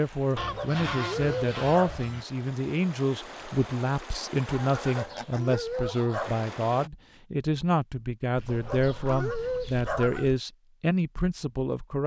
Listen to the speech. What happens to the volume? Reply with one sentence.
The volume of the speech stays about the same.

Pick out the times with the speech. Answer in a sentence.
The speech can be heard from 0.0 to 12.0 s.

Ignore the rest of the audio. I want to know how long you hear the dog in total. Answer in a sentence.
You can hear the dog for 5 seconds altogether.